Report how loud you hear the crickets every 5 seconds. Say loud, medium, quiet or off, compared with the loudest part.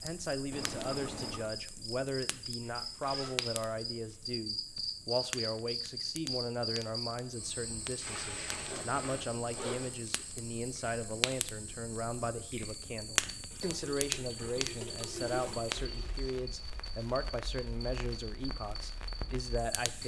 loud, loud, medium, medium.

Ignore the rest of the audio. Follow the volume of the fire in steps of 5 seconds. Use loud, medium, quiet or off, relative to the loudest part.
medium, medium, loud, medium.